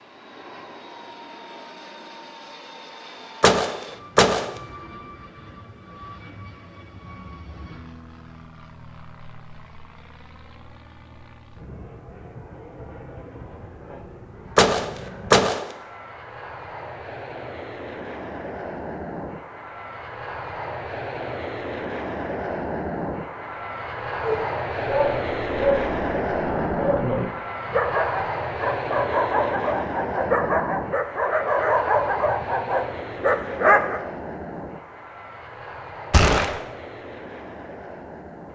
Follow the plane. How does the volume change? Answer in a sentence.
The volume of the plane goes up, then down.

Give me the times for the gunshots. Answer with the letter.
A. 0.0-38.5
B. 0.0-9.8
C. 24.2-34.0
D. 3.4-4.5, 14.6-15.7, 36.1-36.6
D.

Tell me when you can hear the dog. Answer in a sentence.
The dog can be heard from 24.2 to 34.0 s.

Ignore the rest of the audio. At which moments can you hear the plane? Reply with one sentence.
The plane can be heard from 0.0 to 38.5 s.